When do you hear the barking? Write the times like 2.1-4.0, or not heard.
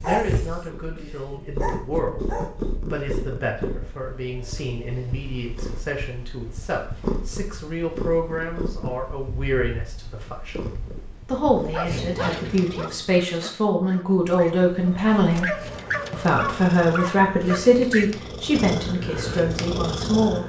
0.0-2.6, 11.7-18.1.